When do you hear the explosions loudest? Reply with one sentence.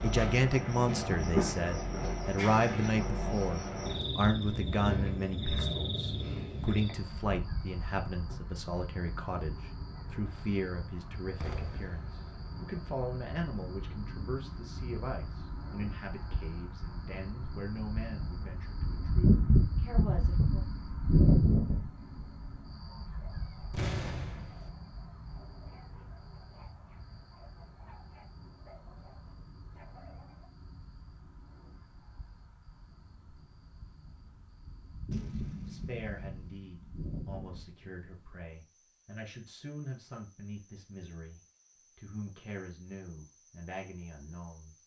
The volume of the explosions peaks at 24 seconds.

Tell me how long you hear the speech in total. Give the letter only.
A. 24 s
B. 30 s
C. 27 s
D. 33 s
B.